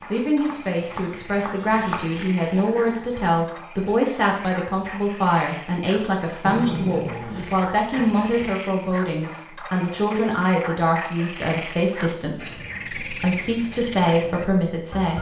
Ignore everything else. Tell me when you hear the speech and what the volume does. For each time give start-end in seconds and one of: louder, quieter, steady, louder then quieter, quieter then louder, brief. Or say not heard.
0.1-15.1 steady.